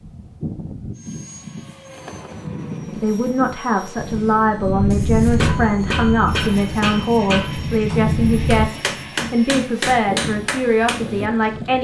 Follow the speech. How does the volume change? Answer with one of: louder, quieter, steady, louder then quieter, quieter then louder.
steady.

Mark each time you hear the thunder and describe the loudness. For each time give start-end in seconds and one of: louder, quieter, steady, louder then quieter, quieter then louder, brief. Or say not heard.
4.0-8.7 quieter then louder.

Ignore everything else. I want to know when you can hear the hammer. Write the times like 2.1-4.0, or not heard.
4.9-11.3.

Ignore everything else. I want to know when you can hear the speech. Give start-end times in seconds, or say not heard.
3.0-11.7.